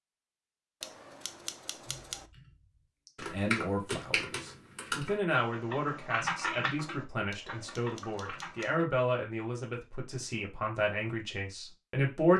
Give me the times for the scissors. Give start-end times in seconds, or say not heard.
0.8-2.2, 7.3-8.8.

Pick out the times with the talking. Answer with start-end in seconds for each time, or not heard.
3.3-12.3.